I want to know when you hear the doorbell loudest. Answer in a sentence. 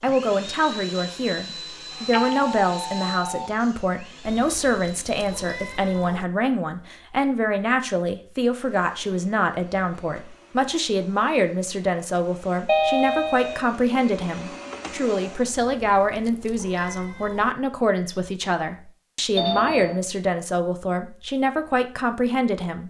The loudest moment of the doorbell is at 13 seconds.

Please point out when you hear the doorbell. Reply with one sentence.
You can hear the doorbell from 1.5 to 3.5 s, from 12.7 to 13.8 s and from 19.4 to 19.9 s.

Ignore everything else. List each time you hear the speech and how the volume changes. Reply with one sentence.
The speech can be heard from 0.0 to 22.8 s, at a steady volume.